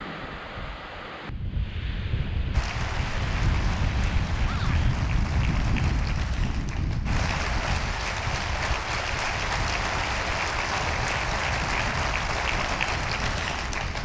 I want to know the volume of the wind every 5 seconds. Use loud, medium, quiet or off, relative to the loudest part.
loud, loud, medium.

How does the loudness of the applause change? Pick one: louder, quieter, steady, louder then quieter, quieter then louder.
louder.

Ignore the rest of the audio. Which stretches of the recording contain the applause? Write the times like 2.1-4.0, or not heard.
2.5-14.0.